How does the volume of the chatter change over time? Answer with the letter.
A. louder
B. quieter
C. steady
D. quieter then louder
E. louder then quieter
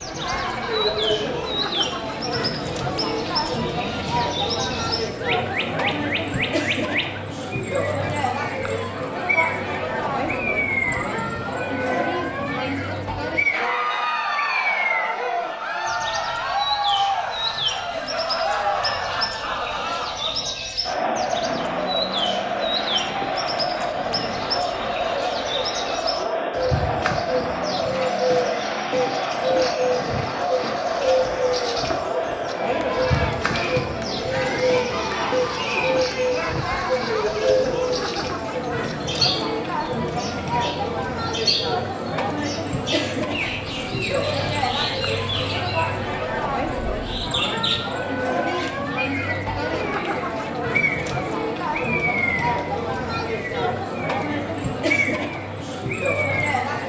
C.